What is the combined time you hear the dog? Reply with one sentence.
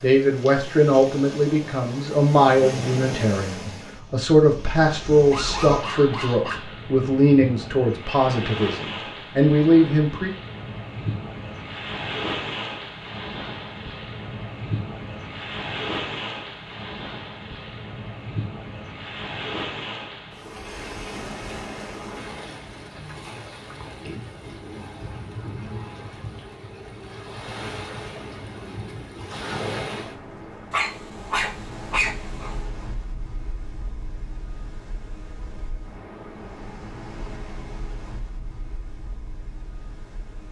You can hear the dog for 3 seconds altogether.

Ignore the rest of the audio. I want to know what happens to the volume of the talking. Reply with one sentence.
The loudness of the talking stays about the same.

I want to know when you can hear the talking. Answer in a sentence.
You can hear the talking from 0.0 to 10.3 s.